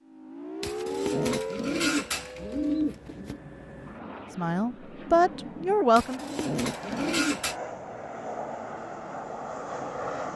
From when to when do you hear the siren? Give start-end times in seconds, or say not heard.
0.0-3.0.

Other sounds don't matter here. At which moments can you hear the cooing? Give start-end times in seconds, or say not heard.
0.6-3.4, 6.0-7.5.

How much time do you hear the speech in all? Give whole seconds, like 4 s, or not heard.
2 s.